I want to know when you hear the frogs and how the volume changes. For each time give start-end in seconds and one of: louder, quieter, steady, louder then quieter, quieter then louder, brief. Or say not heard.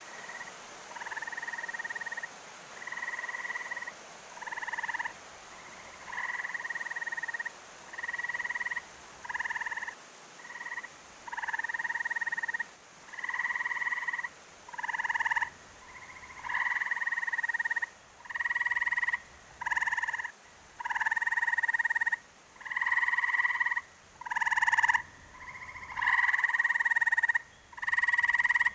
0.1-28.7 louder.